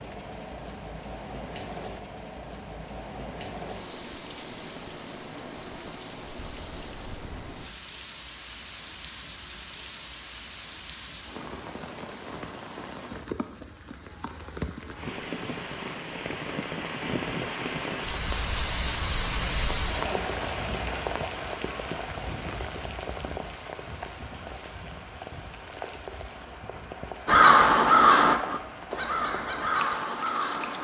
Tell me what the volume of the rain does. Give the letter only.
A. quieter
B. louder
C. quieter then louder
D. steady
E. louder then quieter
E.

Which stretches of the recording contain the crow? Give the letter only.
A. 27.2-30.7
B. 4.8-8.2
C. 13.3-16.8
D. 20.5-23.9
A.